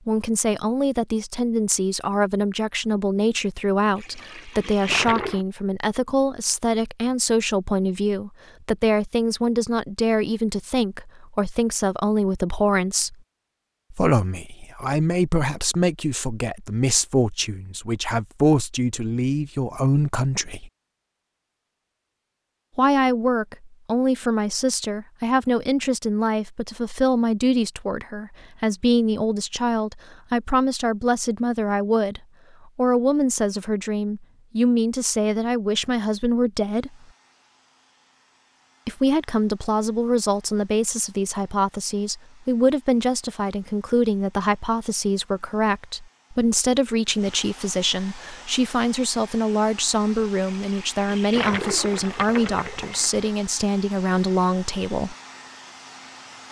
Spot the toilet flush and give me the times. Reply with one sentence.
You can hear the toilet flush from 4.0 to 5.5 s and from 50.4 to 53.1 s.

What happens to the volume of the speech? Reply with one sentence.
The volume of the speech stays about the same.